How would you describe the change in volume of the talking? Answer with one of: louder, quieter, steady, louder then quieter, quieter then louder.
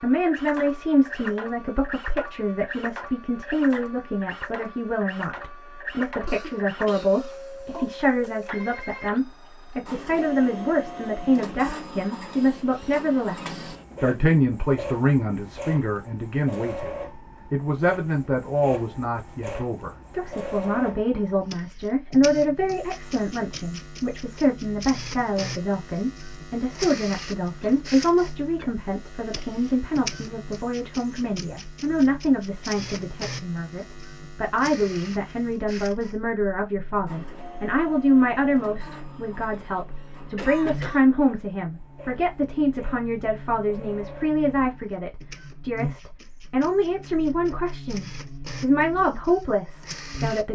steady.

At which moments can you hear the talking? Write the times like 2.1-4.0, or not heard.
0.0-50.4.